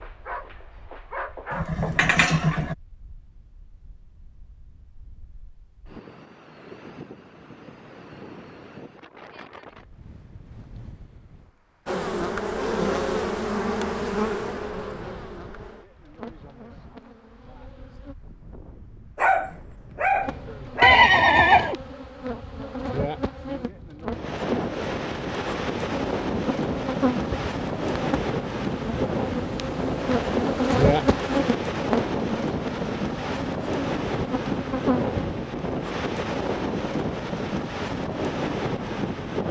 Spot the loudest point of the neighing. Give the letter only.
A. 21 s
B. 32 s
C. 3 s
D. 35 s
A.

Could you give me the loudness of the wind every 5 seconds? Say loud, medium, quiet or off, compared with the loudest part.
quiet, quiet, quiet, quiet, medium, loud, loud, loud.